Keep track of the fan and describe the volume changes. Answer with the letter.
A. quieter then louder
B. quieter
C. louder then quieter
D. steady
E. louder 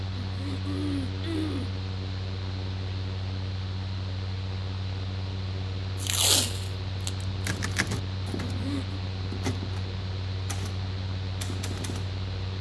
D.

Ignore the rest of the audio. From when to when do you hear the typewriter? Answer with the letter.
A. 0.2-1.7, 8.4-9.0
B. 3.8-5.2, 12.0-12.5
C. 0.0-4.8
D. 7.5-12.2
D.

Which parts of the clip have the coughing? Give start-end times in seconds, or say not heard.
0.2-1.7, 8.4-9.0.